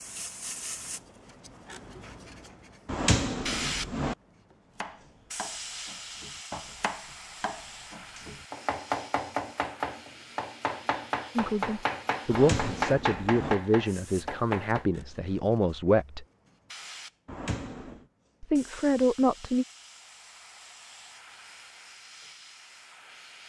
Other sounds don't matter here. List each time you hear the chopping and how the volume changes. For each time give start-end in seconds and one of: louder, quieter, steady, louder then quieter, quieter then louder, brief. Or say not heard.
4.8-14.8 louder.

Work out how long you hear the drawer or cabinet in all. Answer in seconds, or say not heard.
3 s.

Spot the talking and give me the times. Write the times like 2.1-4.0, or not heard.
11.3-16.2, 18.4-19.6.